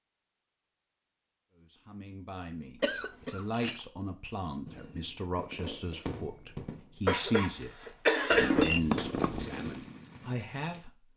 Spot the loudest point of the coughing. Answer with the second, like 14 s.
8 s.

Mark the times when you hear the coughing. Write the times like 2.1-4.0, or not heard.
2.8-3.5, 7.0-8.7.